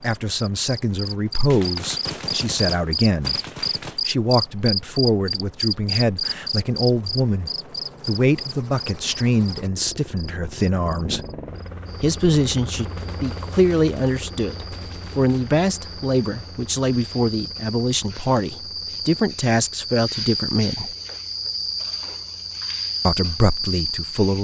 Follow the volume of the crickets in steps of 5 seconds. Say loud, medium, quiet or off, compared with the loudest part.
loud, loud, quiet, medium, loud.